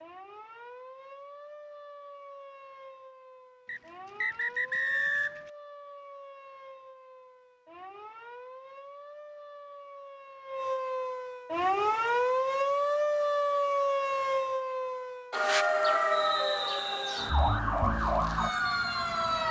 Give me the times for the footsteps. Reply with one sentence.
The footsteps can't be heard in this clip.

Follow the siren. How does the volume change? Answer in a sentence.
The loudness of the siren goes up.